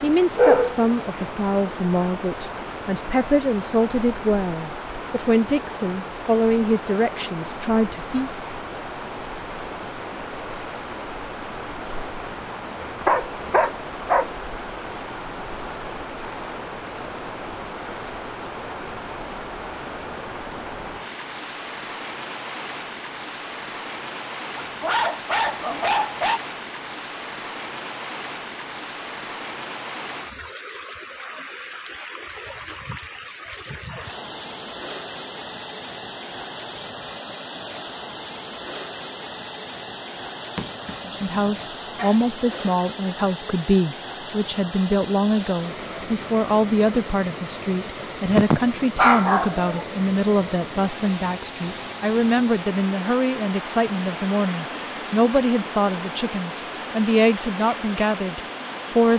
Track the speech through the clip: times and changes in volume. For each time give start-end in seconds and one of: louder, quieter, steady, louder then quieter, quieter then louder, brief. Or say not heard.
0.0-8.3 steady
41.0-59.1 steady.